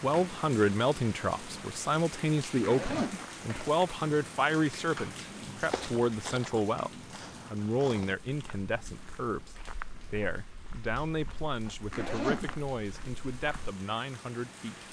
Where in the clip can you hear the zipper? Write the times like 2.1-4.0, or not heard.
2.4-3.8, 11.7-12.6.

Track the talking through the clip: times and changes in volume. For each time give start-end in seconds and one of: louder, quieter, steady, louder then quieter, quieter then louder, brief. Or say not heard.
0.0-14.8 quieter.